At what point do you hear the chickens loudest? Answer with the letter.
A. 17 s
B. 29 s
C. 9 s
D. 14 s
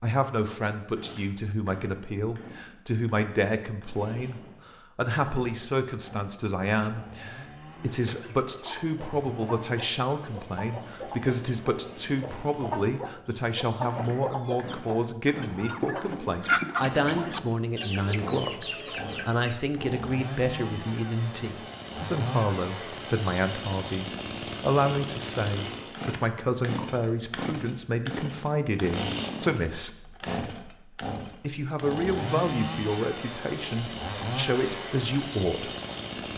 A.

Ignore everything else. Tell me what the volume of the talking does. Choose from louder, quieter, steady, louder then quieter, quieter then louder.
steady.